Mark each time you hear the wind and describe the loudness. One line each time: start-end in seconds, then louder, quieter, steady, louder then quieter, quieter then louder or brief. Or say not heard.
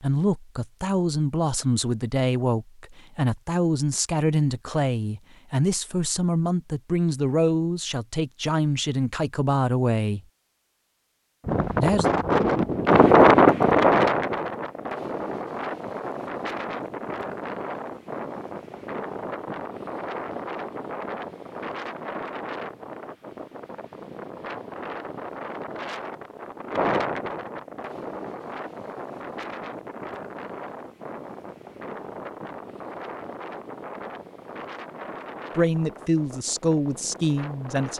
11.4-37.9 quieter.